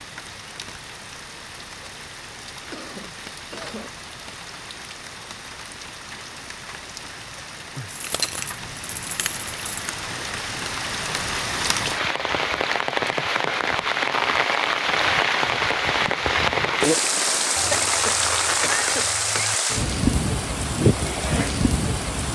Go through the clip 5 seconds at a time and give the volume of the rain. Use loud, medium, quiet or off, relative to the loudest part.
quiet, quiet, loud, loud, loud.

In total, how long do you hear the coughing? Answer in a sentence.
You can hear the coughing for 3 seconds altogether.